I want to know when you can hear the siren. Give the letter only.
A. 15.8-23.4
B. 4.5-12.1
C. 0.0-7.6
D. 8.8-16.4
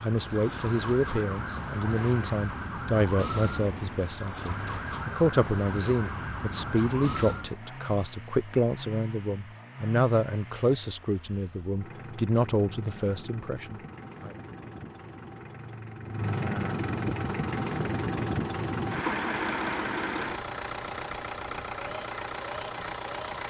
C.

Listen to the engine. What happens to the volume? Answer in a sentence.
The volume of the engine goes up.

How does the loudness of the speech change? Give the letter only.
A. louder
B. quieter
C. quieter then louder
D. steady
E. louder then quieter
D.